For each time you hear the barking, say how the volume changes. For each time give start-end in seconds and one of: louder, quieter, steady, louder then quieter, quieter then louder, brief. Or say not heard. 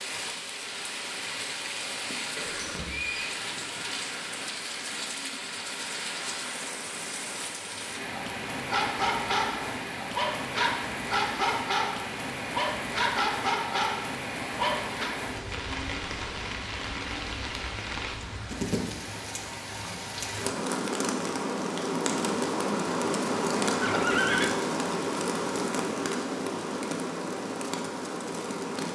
8.7-15.1 steady.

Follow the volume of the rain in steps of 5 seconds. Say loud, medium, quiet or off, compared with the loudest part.
medium, medium, medium, medium, loud, loud.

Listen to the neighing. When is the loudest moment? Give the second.
24 s.